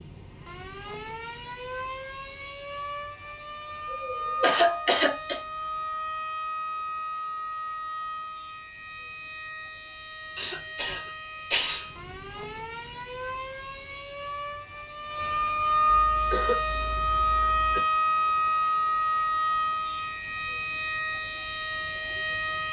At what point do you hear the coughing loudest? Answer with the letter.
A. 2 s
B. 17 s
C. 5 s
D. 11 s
C.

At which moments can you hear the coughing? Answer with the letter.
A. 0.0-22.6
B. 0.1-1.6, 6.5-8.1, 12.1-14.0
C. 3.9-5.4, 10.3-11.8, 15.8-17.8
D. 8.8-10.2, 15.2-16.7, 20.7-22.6
C.